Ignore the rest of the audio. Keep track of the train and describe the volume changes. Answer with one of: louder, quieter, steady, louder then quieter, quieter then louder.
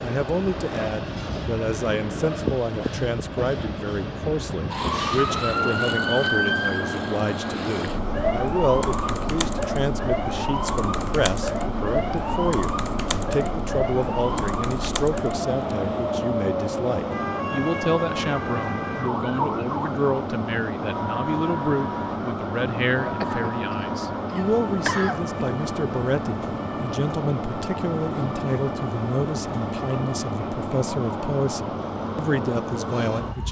steady.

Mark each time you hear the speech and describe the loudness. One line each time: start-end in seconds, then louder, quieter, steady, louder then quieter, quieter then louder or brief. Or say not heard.
0.0-33.4 steady.